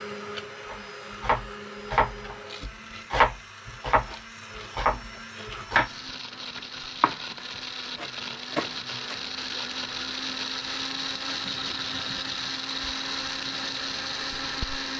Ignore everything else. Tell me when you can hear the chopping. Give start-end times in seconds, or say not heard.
0.7-9.3.